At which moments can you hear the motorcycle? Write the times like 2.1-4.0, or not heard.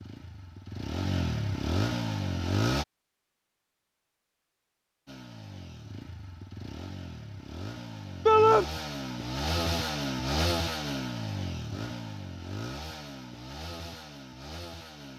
0.0-2.9, 5.0-15.1.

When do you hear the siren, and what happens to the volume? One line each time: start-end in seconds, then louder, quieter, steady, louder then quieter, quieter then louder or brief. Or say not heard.
not heard.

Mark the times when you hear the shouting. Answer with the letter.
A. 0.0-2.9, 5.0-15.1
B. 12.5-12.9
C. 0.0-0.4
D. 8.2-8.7
D.